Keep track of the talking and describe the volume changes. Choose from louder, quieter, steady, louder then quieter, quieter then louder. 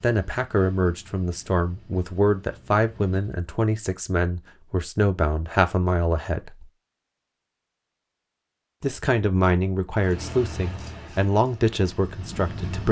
steady.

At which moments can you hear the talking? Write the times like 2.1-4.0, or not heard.
0.0-6.7, 8.8-12.8.